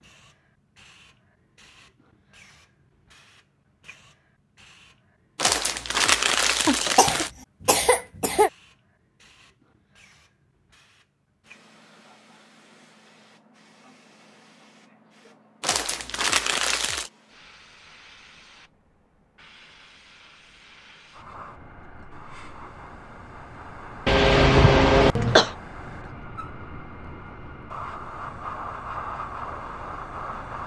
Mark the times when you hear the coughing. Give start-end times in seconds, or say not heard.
6.7-8.5, 24.1-25.5.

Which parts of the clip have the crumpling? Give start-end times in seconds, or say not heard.
5.3-7.3, 15.6-17.1.